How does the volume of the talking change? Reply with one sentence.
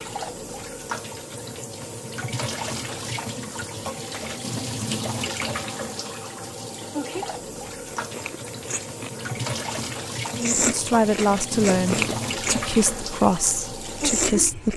The loudness of the talking goes down.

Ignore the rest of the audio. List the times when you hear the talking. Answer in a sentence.
You can hear the talking from 10.3 to 14.7 s.